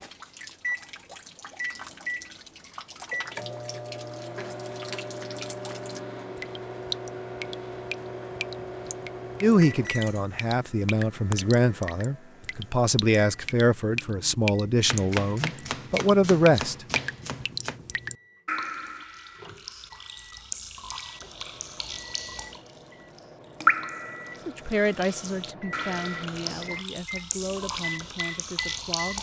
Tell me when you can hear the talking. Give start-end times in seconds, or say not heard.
9.4-16.8, 24.4-29.1.